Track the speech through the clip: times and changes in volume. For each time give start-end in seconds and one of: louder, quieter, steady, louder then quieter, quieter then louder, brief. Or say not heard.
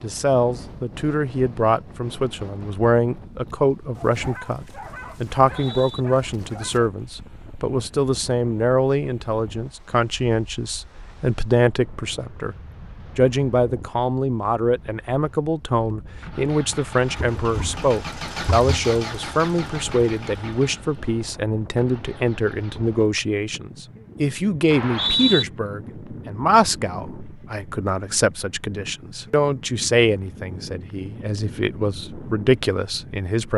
0.0-12.6 steady
13.2-33.5 steady.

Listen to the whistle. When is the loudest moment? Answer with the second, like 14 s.
25 s.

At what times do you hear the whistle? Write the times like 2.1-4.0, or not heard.
5.5-6.0, 24.7-25.4.